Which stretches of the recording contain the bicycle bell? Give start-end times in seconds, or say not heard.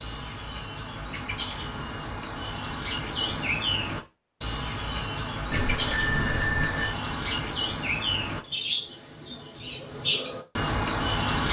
5.5-7.0.